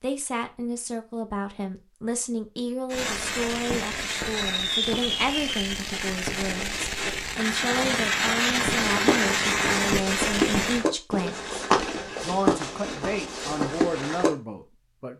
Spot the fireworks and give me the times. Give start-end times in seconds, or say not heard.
2.9-10.8.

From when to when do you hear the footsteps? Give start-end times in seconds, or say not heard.
8.8-14.3.